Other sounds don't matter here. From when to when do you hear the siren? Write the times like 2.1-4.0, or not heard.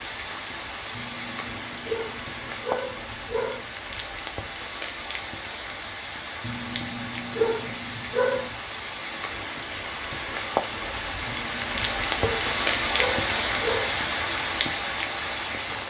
not heard.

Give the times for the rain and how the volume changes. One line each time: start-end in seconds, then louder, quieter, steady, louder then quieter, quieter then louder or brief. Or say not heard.
0.0-15.8 louder.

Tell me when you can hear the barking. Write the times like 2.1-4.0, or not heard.
0.9-3.6, 6.4-8.6, 11.2-13.9.